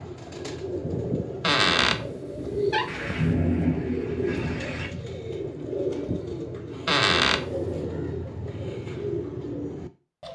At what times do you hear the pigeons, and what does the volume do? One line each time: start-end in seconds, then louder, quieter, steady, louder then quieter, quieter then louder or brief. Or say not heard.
0.0-10.2 steady.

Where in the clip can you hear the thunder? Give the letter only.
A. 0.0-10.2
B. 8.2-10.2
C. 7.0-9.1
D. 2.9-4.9
D.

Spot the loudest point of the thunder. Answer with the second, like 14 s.
3 s.